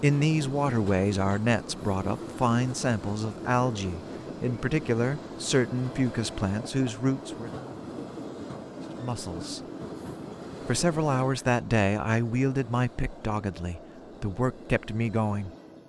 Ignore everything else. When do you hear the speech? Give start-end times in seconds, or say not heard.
0.0-7.5, 9.0-9.6, 10.7-15.5.